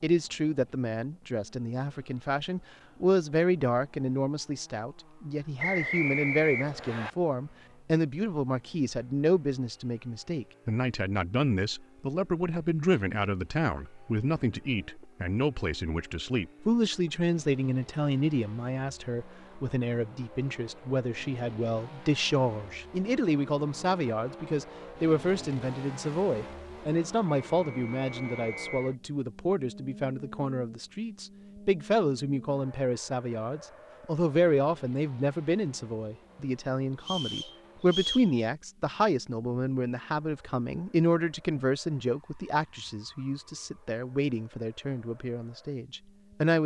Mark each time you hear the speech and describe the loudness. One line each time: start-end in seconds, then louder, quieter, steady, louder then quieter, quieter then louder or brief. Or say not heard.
0.0-46.6 steady.